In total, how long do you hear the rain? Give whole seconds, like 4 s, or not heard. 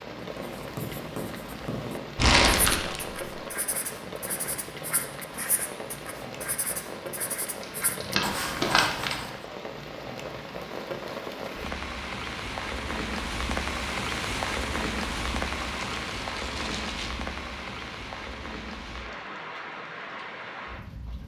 21 s.